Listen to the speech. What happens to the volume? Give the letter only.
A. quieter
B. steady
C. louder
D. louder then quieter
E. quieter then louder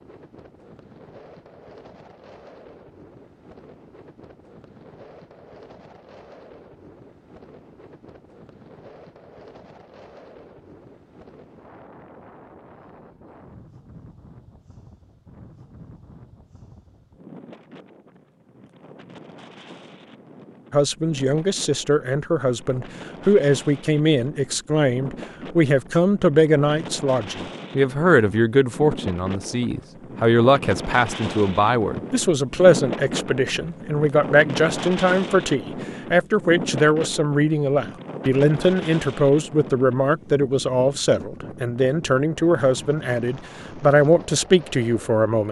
B.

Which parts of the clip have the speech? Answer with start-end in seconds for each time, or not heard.
20.7-45.4.